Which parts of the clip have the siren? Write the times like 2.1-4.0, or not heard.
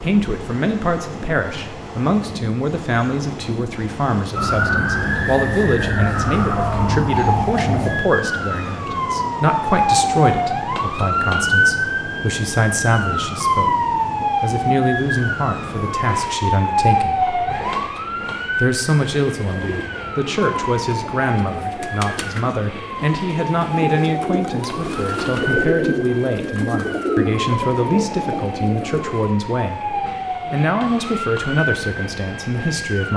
4.3-33.1.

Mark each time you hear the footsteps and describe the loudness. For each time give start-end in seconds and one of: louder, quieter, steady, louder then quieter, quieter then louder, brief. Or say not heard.
not heard.